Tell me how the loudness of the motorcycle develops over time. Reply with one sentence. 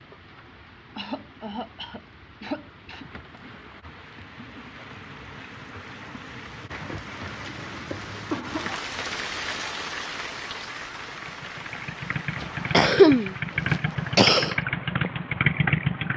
The volume of the motorcycle goes up.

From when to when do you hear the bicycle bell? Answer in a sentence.
The bicycle bell can't be heard in this clip.